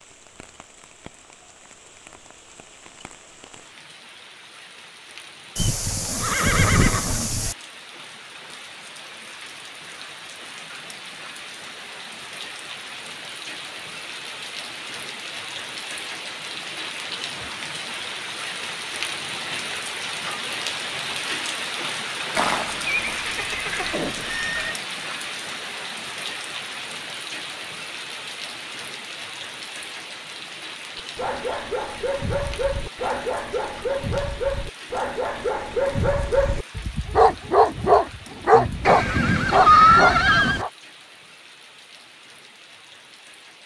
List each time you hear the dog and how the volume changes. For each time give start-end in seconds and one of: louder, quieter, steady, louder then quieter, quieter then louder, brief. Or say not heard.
30.9-40.7 louder.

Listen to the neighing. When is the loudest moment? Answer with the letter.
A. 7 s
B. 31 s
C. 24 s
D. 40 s
D.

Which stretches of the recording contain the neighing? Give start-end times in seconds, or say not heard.
5.5-7.5, 22.4-24.8, 38.9-40.6.